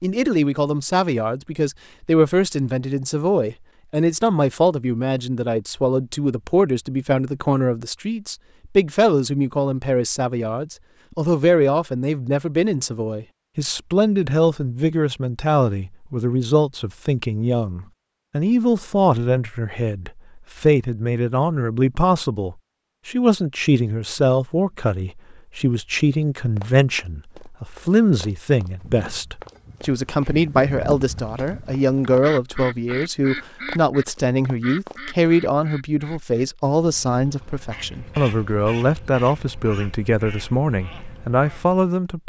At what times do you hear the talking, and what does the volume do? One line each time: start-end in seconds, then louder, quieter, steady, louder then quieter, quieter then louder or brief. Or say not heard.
0.0-42.2 steady.